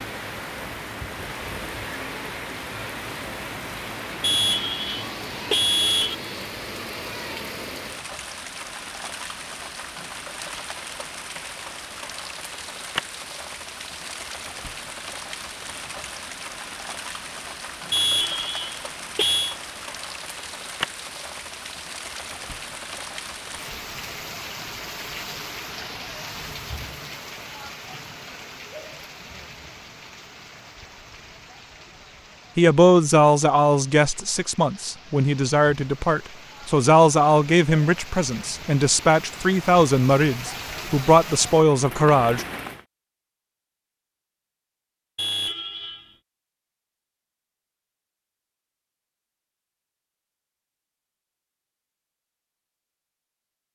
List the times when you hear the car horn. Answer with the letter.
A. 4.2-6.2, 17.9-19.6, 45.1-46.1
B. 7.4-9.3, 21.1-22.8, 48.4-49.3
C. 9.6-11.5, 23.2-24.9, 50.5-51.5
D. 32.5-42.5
A.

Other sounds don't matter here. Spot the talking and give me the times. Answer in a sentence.
The talking can be heard from 32.5 to 42.5 s.